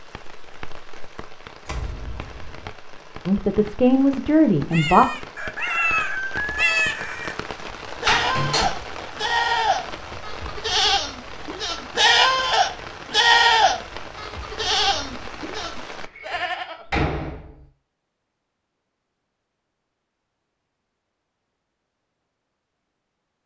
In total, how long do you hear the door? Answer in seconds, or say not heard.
3 s.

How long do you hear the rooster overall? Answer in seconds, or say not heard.
2 s.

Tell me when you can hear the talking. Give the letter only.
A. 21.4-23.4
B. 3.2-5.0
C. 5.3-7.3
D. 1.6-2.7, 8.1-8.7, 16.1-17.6
B.